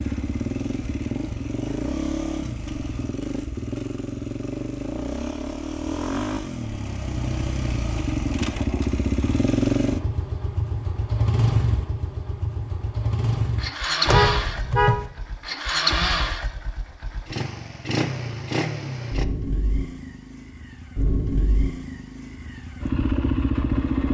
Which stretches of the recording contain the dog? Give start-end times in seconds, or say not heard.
not heard.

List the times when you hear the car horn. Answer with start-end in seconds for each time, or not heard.
14.1-15.1.